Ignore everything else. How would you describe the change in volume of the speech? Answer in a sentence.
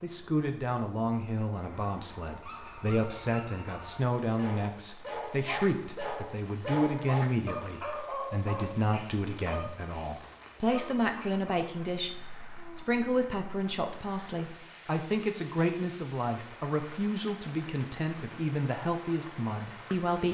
The volume of the speech stays about the same.